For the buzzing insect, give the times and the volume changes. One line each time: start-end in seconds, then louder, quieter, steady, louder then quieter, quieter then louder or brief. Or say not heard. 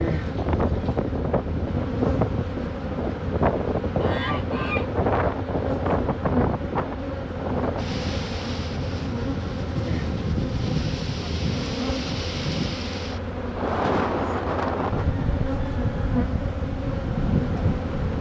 0.0-18.1 steady.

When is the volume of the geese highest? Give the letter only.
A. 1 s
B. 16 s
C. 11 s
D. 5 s
C.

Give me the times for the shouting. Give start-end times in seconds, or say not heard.
not heard.